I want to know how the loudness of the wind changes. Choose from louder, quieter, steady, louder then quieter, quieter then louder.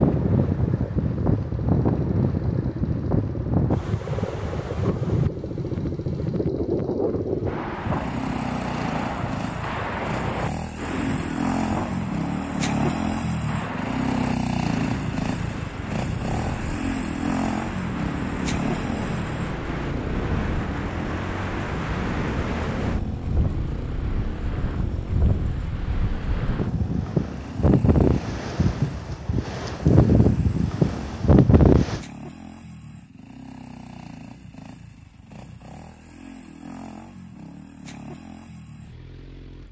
quieter then louder.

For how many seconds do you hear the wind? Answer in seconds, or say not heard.
32 s.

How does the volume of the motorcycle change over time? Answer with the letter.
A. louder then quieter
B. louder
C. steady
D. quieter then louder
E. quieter
A.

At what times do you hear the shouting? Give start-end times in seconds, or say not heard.
not heard.